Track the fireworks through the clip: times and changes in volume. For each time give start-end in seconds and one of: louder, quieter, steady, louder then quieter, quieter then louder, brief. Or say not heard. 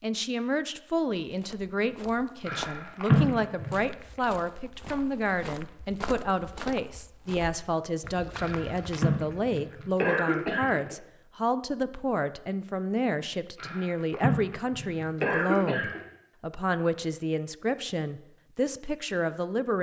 not heard.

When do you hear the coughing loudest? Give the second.
3 s.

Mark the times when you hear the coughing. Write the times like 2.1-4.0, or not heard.
2.4-3.8, 8.3-10.9, 13.6-16.0.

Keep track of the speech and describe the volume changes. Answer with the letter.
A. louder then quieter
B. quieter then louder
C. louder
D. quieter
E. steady
E.